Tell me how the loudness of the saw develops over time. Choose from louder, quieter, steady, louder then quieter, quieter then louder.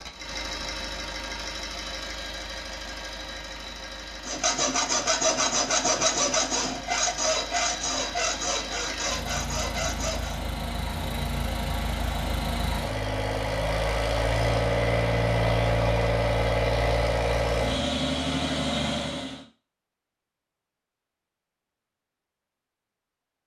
quieter.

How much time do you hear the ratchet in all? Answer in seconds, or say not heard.
not heard.